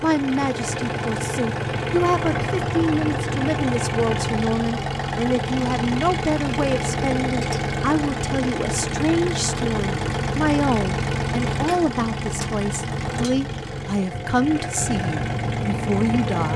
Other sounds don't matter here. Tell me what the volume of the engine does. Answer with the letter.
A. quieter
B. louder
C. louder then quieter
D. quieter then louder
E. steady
E.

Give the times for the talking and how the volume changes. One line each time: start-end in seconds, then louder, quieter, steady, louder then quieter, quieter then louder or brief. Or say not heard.
0.0-16.5 steady.